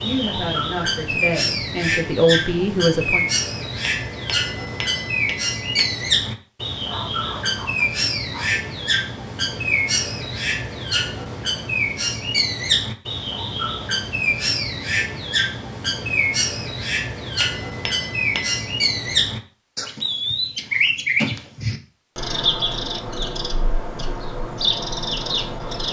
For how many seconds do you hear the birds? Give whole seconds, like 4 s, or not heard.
26 s.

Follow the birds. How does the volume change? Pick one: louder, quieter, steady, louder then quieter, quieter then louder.
steady.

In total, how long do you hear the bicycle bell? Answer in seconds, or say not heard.
3 s.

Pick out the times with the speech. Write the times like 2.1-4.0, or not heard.
0.0-3.2.